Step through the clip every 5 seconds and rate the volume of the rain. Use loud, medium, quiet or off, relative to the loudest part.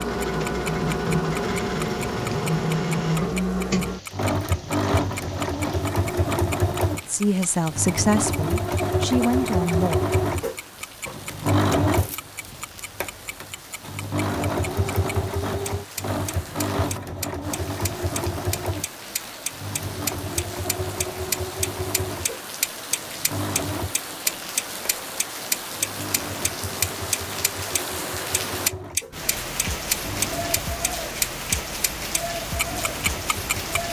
quiet, quiet, quiet, medium, medium, loud, loud.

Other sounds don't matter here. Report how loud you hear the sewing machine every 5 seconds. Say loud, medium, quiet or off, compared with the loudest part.
loud, loud, loud, medium, medium, quiet, quiet.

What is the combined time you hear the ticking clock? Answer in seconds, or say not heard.
34 s.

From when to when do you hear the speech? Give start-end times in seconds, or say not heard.
7.0-10.0.